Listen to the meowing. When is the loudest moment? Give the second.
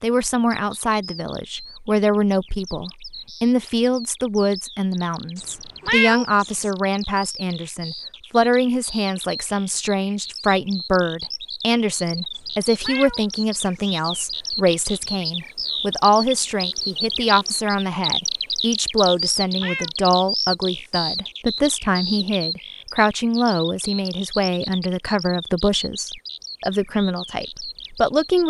6 s.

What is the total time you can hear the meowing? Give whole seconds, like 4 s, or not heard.
4 s.